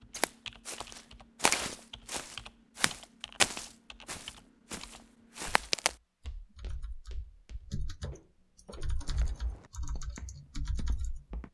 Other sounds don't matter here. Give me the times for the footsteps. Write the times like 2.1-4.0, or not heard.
0.1-11.4.